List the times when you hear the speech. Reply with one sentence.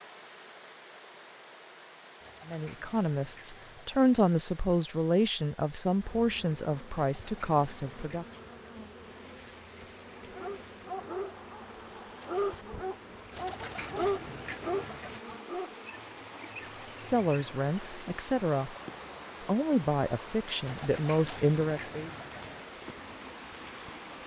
The speech can be heard from 2.5 to 8.2 s, from 16.9 to 18.8 s and from 19.4 to 22.1 s.